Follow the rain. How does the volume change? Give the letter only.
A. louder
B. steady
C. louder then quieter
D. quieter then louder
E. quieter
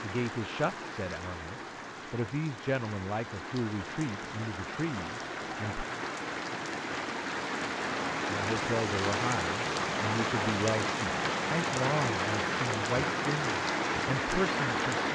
A.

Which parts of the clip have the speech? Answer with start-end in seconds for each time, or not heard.
0.0-5.8, 8.3-15.0.